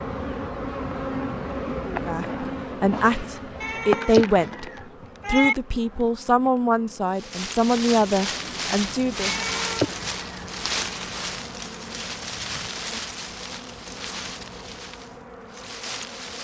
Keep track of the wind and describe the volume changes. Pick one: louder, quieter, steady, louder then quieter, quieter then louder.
quieter.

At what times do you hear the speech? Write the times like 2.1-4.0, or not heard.
1.9-4.7, 5.2-9.4.